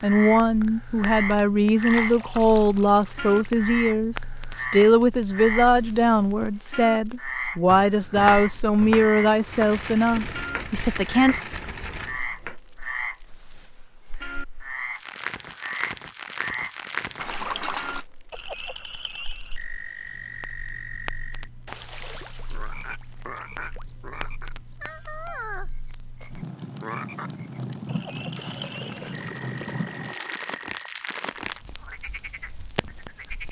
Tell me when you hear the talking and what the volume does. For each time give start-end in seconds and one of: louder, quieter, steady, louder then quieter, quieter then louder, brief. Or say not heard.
0.0-11.3 steady.